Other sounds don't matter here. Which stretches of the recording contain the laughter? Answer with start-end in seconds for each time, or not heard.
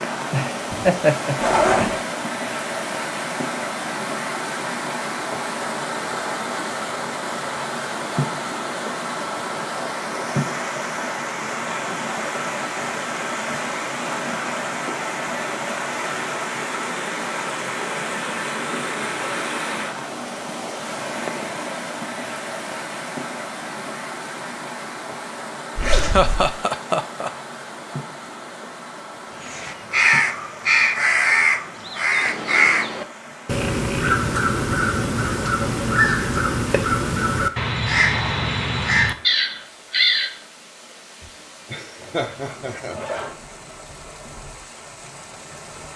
0.3-1.9, 25.9-27.3, 41.2-43.2.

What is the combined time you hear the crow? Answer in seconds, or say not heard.
11 s.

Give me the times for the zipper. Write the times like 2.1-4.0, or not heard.
1.4-2.0, 25.8-26.5, 42.0-43.4.